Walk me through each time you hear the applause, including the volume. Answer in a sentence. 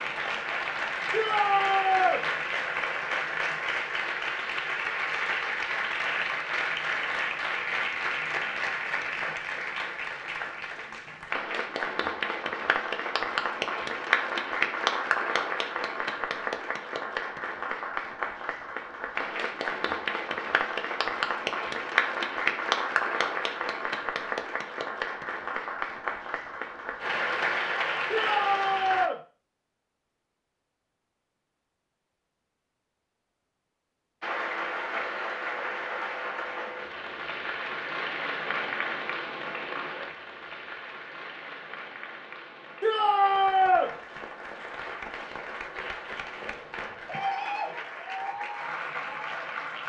You can hear the applause from 0.0 to 29.1 s, at a steady volume; and from 34.2 to 49.8 s, getting quieter then louder.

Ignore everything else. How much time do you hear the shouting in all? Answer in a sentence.
You can hear the shouting for 3 seconds altogether.